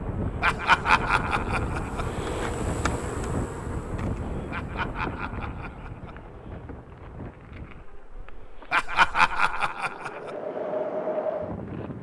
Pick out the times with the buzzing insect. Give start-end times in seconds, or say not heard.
0.0-11.9.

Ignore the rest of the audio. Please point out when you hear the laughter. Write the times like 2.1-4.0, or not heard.
0.4-2.0, 4.5-6.2, 8.7-10.3.